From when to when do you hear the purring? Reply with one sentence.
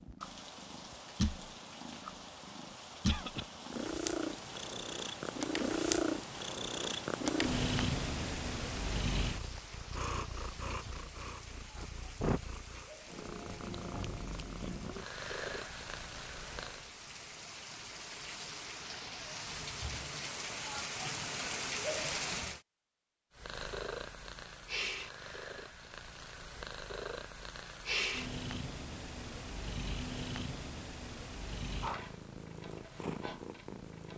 You can hear the purring from 0.0 to 16.9 s and from 23.4 to 34.1 s.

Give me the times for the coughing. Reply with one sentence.
You can hear the coughing from 3.0 to 3.5 s.